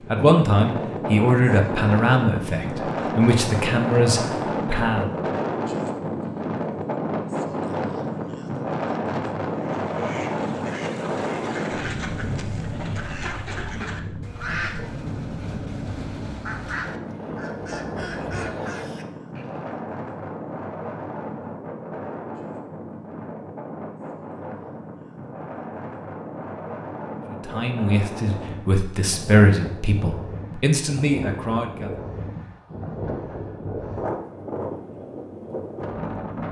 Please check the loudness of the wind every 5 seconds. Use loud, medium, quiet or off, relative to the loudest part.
loud, loud, loud, medium, medium, medium, medium, medium.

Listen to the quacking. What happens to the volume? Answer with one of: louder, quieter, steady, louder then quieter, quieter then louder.
steady.